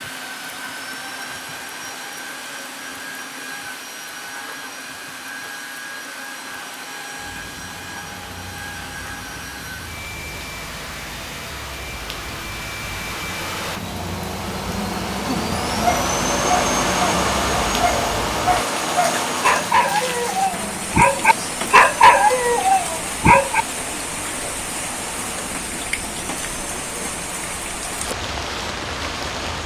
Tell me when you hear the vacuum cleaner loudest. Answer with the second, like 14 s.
17 s.